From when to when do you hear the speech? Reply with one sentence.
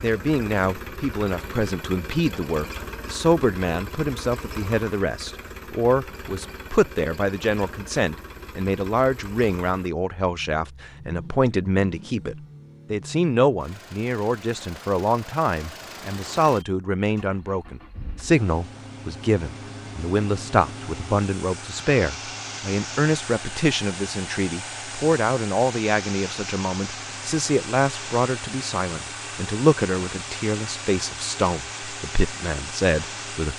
The speech can be heard from 0.0 to 33.5 s.